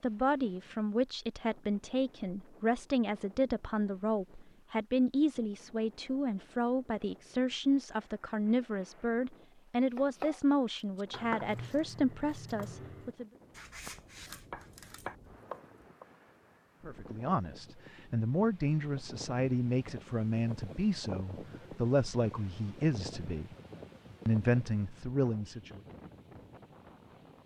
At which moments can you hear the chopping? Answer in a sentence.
The chopping can be heard from 9.9 to 16.1 s.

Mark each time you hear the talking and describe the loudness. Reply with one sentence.
The talking can be heard from 0.0 to 13.2 s, at a steady volume; from 16.9 to 23.5 s, at a steady volume; and briefly from 24.2 to 25.8 s.